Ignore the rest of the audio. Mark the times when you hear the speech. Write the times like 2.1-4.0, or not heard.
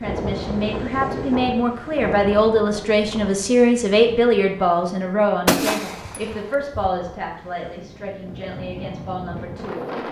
0.0-9.8.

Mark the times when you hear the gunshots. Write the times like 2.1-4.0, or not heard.
5.5-6.9.